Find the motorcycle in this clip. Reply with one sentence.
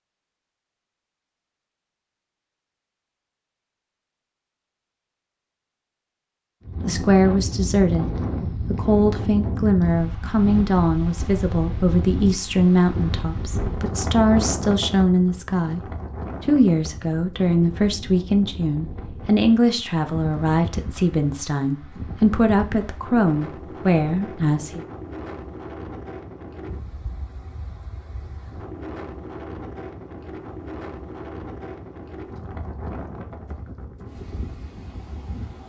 The motorcycle can't be heard in this clip.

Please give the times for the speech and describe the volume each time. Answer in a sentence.
The speech can be heard from 6.8 to 24.9 s, at a steady volume.